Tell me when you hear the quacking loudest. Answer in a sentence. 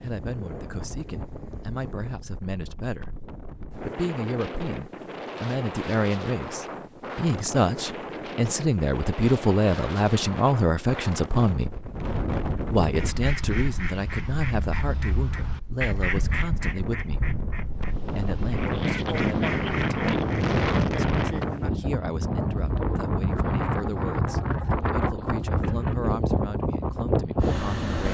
The volume of the quacking peaks at 16 seconds.